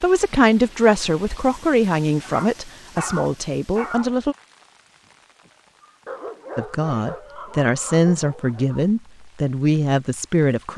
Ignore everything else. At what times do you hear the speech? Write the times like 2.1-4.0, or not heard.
0.0-4.3, 6.5-10.7.